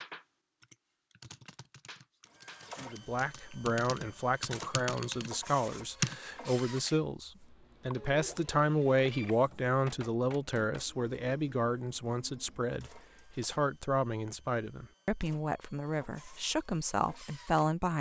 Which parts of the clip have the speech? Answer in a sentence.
You can hear the speech from 2.8 to 17.9 s.